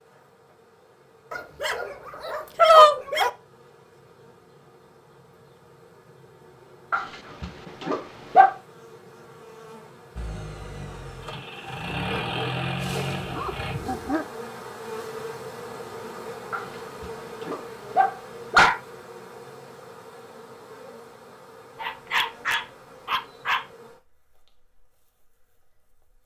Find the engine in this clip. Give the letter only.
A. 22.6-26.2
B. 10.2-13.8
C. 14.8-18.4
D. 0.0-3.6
B.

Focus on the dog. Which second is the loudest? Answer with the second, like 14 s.
3 s.